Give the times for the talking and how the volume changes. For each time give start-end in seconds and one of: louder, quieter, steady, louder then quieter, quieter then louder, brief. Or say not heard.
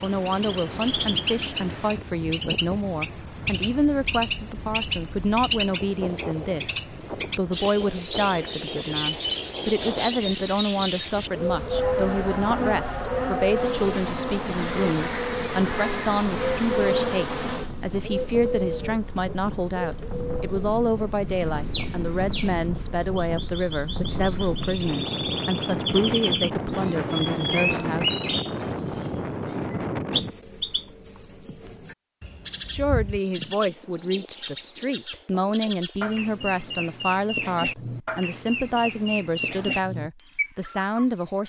0.0-28.3 steady
32.7-41.4 steady.